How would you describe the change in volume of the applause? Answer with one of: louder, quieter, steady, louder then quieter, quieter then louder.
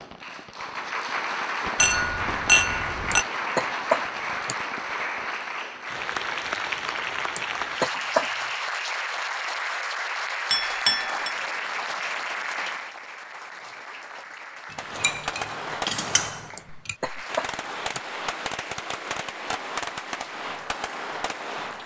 quieter.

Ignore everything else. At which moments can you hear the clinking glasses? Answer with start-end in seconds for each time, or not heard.
1.8-3.2, 10.5-11.3, 14.7-16.9.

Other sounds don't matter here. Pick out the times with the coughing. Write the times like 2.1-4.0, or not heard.
3.1-4.5, 7.3-8.3, 16.6-18.0.